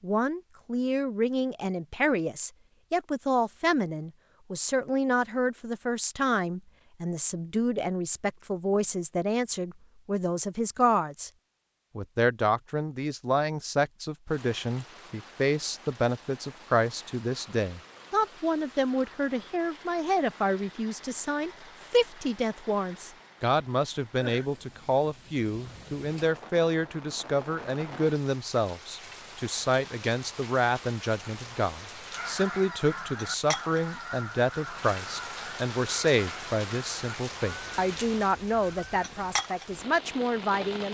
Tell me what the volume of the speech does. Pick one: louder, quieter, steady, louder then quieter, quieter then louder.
steady.